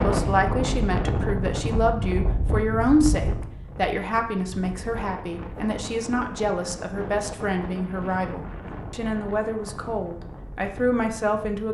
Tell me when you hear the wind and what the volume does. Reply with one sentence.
The wind can be heard from 0.0 to 11.6 s, getting quieter.